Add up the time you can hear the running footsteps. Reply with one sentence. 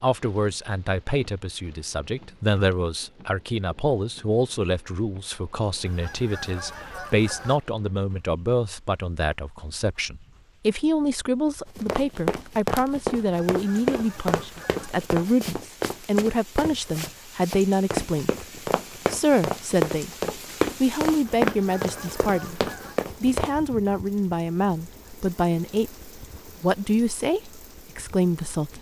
You can hear the running footsteps for 12 seconds altogether.